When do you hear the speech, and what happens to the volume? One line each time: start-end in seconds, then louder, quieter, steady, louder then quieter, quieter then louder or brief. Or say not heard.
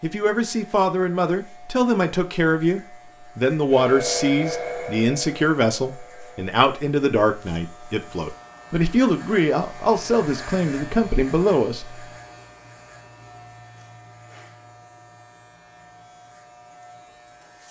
0.0-12.1 steady.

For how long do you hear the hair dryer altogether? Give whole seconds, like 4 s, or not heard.
3 s.